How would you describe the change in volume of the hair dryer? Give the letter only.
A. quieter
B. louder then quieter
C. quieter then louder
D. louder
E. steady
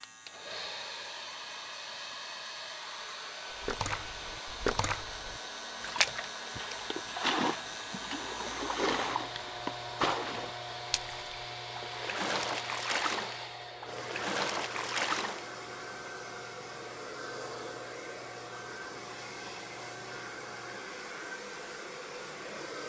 E.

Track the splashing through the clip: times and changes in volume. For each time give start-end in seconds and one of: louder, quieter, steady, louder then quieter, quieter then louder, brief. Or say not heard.
3.6-15.5 steady.